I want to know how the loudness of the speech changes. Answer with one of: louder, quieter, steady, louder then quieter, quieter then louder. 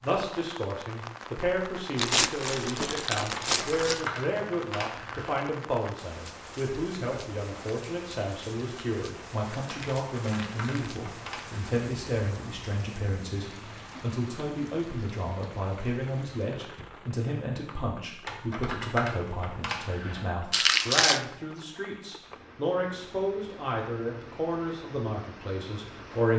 steady.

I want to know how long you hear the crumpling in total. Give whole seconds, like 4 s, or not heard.
4 s.